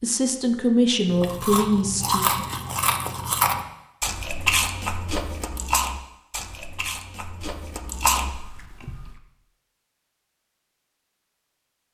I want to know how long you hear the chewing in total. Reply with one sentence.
You can hear the chewing for 8 seconds altogether.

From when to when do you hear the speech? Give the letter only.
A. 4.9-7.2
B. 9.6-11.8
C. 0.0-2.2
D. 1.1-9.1
C.